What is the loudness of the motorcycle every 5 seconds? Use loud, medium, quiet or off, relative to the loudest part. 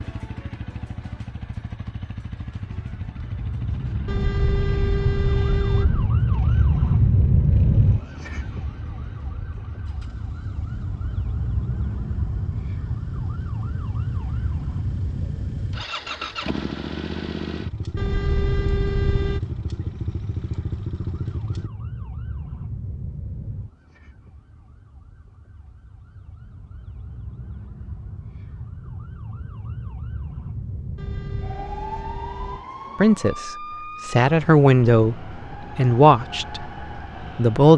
medium, quiet, quiet, loud, loud, off, off, off.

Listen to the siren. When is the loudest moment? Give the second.
7 s.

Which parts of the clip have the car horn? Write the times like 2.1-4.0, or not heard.
4.0-6.1, 17.9-19.4, 30.9-32.6.